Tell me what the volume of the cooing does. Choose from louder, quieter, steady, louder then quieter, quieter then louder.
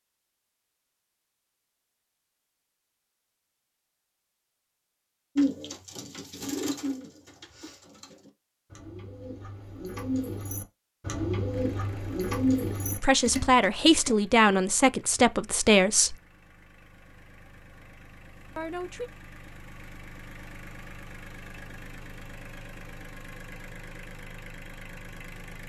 quieter then louder.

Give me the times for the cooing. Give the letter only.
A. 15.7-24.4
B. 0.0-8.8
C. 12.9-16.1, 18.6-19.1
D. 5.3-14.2
D.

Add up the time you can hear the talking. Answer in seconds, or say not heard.
4 s.